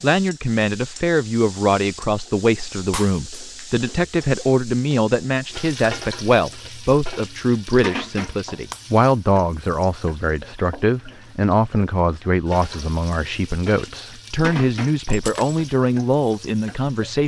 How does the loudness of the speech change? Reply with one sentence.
The loudness of the speech stays about the same.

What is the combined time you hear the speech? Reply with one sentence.
The speech can be heard for 17 seconds in total.